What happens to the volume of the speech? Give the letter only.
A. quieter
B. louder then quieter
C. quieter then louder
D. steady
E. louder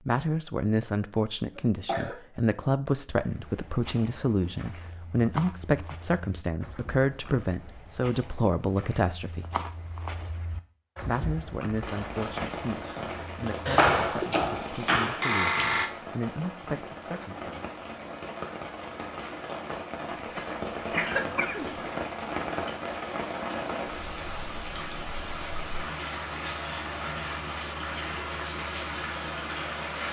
A.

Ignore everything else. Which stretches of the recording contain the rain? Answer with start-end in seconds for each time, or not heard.
11.8-30.0.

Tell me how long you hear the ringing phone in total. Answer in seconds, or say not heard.
2 s.